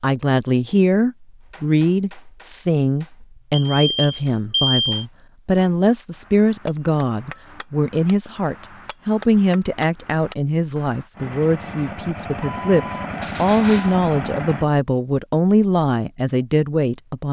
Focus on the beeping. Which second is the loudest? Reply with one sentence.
The loudest moment of the beeping is at 5 seconds.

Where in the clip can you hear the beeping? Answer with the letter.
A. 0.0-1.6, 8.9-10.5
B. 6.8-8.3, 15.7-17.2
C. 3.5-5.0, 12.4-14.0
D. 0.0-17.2
C.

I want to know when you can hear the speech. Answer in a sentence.
The speech can be heard from 0.0 to 17.2 s.